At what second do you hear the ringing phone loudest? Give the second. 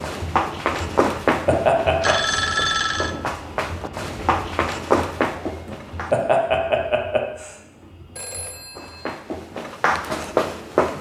3 s.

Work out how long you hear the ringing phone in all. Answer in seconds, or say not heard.
2 s.